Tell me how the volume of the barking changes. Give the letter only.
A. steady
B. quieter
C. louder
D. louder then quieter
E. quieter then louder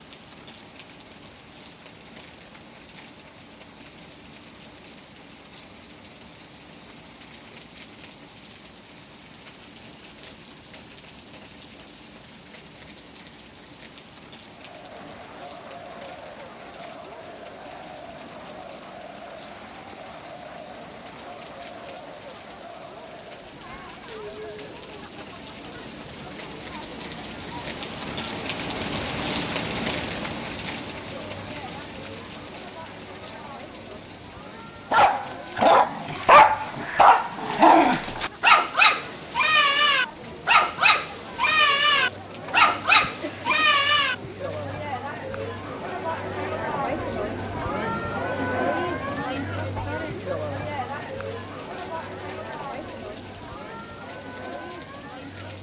A.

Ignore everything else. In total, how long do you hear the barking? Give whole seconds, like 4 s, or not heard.
9 s.